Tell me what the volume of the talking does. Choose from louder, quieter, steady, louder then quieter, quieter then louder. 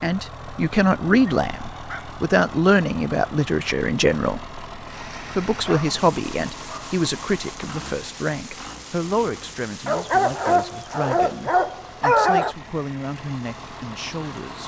quieter.